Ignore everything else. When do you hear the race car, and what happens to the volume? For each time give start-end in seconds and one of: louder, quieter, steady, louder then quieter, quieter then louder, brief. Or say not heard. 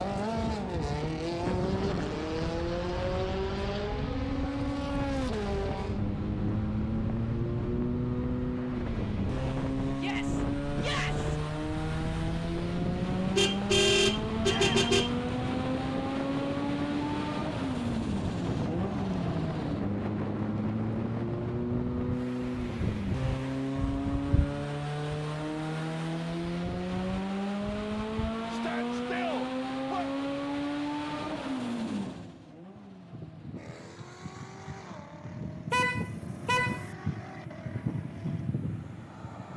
0.0-39.5 quieter.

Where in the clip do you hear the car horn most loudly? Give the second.
14 s.